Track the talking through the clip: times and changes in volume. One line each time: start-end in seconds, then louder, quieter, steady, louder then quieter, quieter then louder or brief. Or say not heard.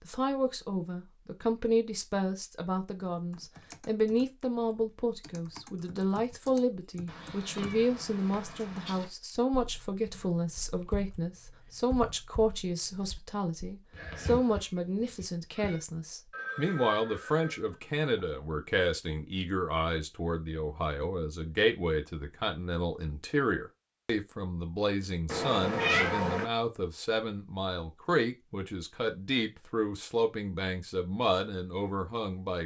0.1-32.6 steady.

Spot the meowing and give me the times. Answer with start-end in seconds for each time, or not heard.
7.0-9.1, 13.9-15.8, 25.2-26.4.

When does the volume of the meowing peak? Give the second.
26 s.